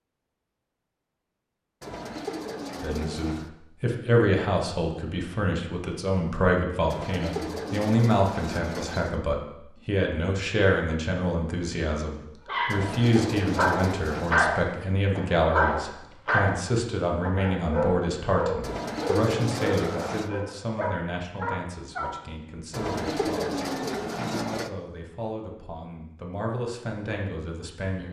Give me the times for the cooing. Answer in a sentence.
You can hear the cooing from 1.8 to 3.5 s, from 6.9 to 9.2 s, from 12.7 to 14.3 s, from 18.6 to 20.3 s and from 22.7 to 24.7 s.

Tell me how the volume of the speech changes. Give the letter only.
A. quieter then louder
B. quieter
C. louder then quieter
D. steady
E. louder
B.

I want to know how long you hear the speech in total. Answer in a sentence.
You can hear the speech for 25 seconds altogether.